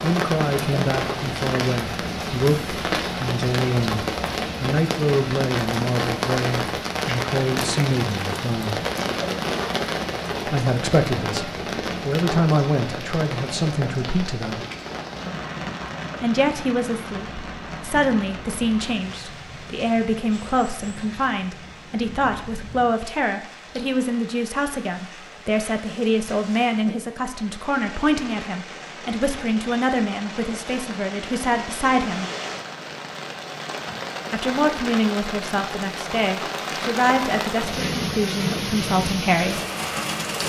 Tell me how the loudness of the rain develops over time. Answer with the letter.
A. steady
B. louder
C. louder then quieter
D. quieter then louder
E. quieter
D.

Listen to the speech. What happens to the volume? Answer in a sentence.
The volume of the speech stays about the same.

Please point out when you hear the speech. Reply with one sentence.
The speech can be heard from 0.0 to 8.8 s, from 10.4 to 14.6 s, from 16.2 to 32.2 s and from 34.3 to 39.6 s.